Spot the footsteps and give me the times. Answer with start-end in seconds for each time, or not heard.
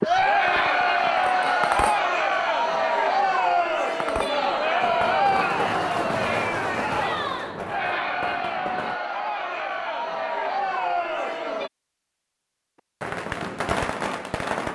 not heard.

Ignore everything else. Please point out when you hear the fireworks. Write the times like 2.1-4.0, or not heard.
0.0-2.0, 3.9-9.0, 13.0-14.7.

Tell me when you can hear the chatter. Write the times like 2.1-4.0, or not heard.
0.0-11.7.